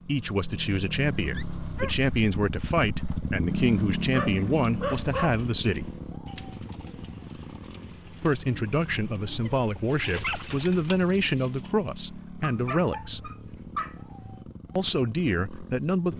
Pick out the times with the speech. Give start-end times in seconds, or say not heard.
0.0-5.9, 8.2-13.3, 14.8-16.1.